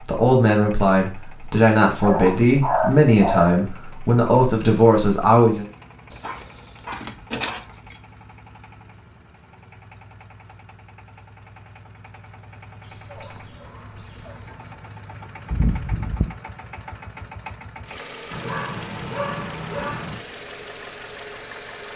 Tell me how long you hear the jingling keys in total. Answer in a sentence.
You can hear the jingling keys for 3 seconds altogether.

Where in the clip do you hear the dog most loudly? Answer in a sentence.
The loudest moment of the dog is at 3 seconds.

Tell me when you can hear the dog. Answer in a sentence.
You can hear the dog from 2.0 to 3.5 s, from 6.2 to 7.8 s, from 12.8 to 14.6 s and from 18.3 to 20.2 s.